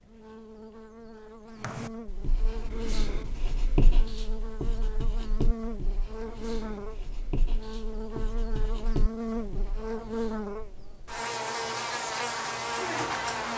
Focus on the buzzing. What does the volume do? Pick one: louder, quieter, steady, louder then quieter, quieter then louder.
louder.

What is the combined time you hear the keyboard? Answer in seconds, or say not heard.
not heard.